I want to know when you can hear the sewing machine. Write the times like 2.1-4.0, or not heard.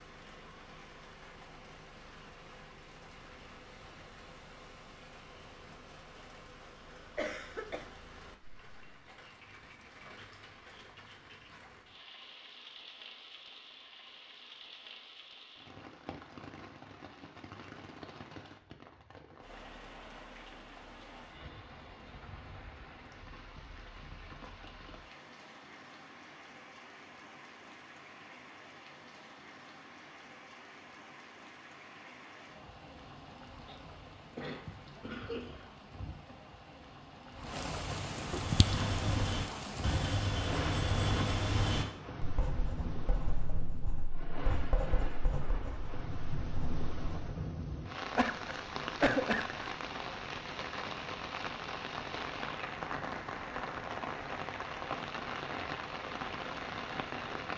not heard.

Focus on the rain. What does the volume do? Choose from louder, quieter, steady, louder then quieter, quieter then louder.
louder.